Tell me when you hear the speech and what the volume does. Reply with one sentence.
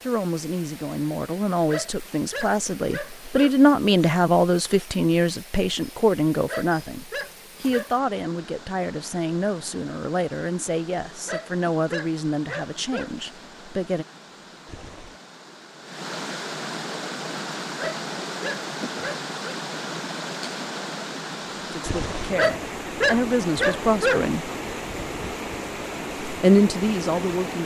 The speech can be heard from 0.0 to 14.1 s, getting louder then quieter; briefly from 21.7 to 24.5 s; and briefly from 26.2 to 27.6 s.